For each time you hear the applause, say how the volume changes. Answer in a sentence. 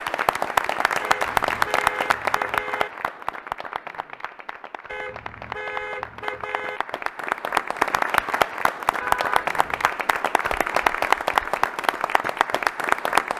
The applause can be heard from 0.0 to 13.3 s, getting quieter then louder.